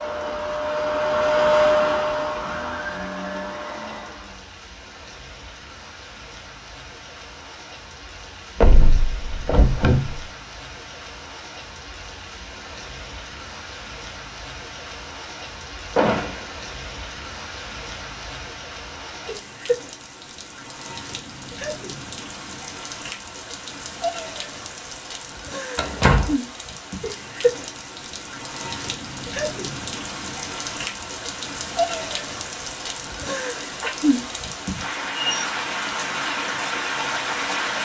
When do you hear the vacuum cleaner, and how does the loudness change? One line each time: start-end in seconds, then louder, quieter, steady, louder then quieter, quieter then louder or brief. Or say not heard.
0.0-4.5 louder then quieter.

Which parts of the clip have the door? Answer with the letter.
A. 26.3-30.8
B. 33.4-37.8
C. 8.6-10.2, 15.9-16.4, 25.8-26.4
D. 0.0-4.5
C.